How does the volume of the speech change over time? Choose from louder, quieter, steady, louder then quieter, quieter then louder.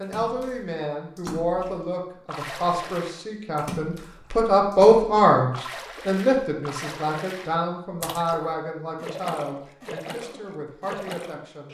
louder then quieter.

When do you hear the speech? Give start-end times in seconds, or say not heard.
0.0-11.6.